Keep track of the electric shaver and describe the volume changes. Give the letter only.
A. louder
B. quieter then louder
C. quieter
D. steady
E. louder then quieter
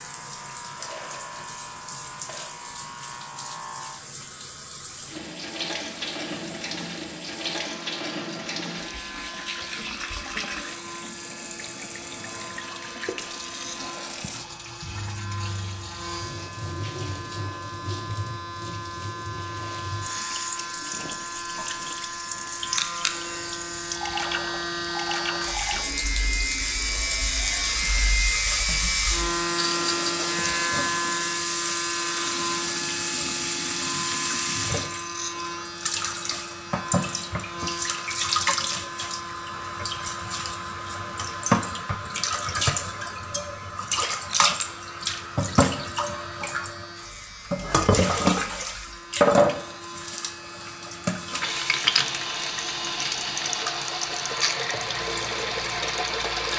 E.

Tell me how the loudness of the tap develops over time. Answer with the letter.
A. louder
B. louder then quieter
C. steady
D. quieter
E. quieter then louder
A.